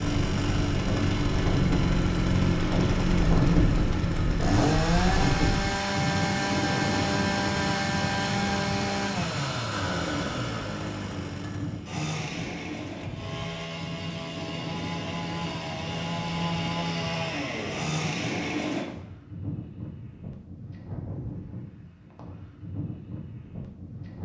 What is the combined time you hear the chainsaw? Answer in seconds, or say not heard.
19 s.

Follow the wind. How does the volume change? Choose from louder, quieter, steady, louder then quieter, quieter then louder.
quieter.